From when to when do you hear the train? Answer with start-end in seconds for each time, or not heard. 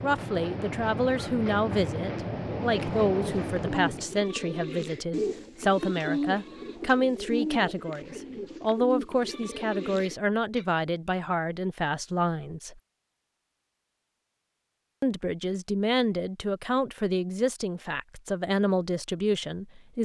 0.0-4.2.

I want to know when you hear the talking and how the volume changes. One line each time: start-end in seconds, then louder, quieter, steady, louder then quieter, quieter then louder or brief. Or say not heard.
0.0-12.8 steady
15.0-20.0 steady.